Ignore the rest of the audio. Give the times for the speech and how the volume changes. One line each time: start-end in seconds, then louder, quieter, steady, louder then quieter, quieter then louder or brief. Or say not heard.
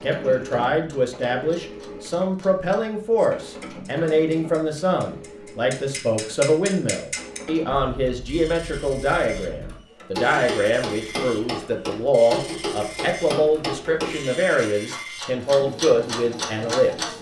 0.0-17.1 steady.